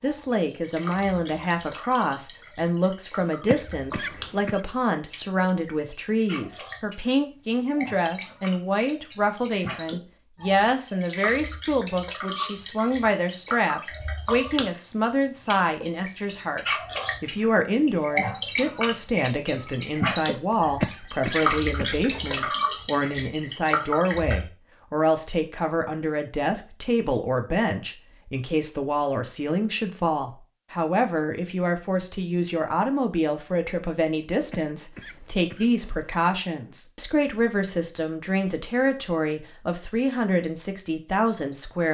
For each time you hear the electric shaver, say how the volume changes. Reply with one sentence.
You can't hear the electric shaver here.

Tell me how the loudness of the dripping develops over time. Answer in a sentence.
The volume of the dripping goes up.